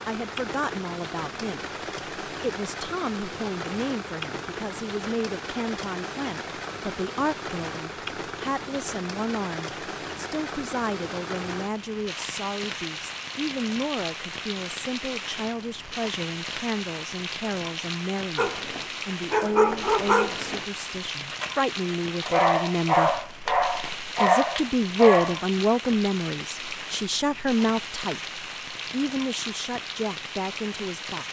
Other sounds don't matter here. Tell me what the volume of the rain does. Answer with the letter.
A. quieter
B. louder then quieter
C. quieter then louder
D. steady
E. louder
D.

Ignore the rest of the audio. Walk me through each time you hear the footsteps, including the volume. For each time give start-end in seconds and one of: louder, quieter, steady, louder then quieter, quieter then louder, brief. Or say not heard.
not heard.